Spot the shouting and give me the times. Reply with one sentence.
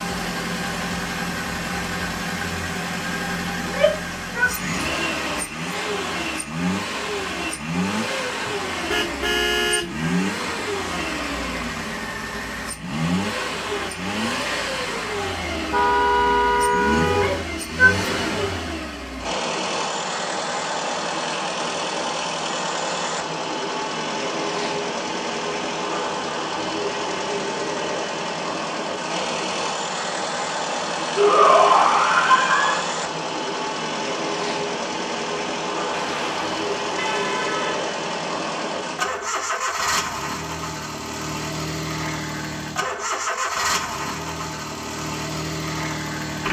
The shouting can be heard from 3.5 to 4.5 s, from 17.1 to 18.5 s and from 31.1 to 32.9 s.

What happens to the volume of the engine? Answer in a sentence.
The loudness of the engine stays about the same.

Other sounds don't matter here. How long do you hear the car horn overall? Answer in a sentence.
The car horn can be heard for 5 seconds in total.